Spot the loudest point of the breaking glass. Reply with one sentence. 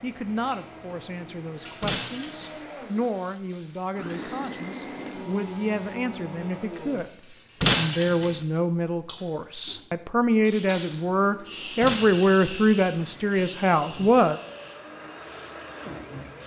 The volume of the breaking glass peaks at 8 seconds.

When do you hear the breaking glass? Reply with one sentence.
You can hear the breaking glass from 1.8 to 2.6 s, from 7.6 to 8.4 s and from 11.8 to 12.4 s.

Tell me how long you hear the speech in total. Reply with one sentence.
The speech can be heard for 14 seconds in total.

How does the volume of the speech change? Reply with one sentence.
The volume of the speech goes up.